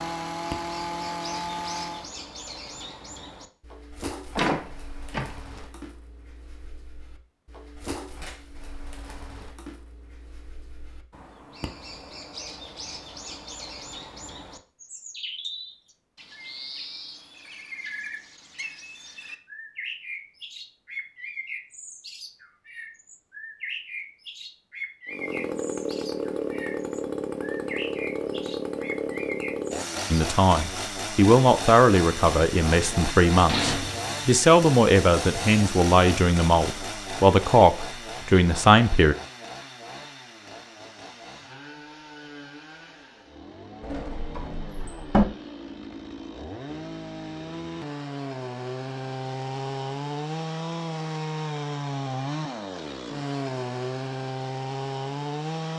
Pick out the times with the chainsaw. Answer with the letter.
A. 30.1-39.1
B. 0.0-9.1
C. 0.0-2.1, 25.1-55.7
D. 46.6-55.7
C.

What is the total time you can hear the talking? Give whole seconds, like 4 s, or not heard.
9 s.